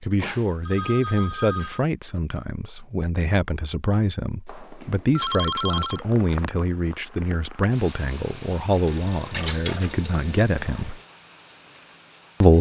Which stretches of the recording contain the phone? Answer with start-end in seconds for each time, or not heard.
0.2-1.8, 4.5-6.0, 8.8-11.0.